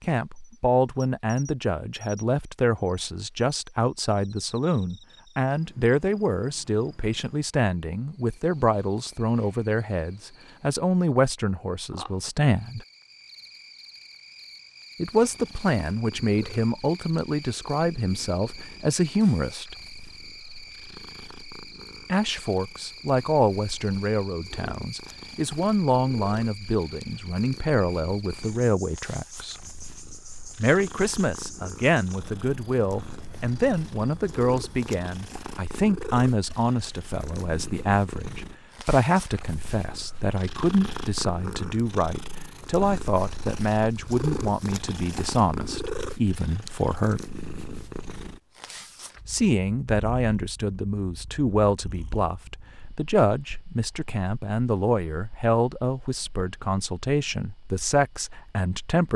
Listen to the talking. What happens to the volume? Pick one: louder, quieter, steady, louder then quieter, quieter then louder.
steady.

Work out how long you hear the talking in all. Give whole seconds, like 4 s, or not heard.
52 s.